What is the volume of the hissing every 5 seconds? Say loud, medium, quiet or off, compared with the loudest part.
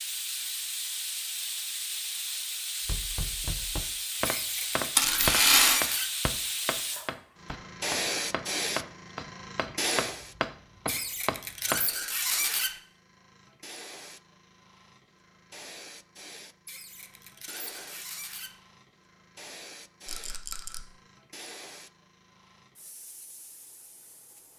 loud, loud, quiet, quiet, quiet.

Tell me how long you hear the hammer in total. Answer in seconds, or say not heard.
9 s.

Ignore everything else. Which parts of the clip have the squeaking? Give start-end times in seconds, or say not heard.
4.2-6.1, 10.8-12.8, 16.6-18.6.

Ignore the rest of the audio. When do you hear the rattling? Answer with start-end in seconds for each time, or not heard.
5.0-5.8, 20.1-20.8.